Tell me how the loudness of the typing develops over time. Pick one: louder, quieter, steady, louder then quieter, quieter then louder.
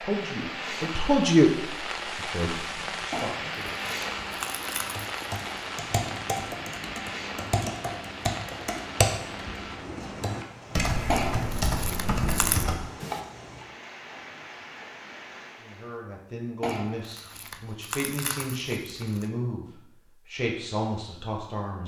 louder.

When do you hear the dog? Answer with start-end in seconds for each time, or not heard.
not heard.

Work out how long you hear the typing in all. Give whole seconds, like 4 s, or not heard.
9 s.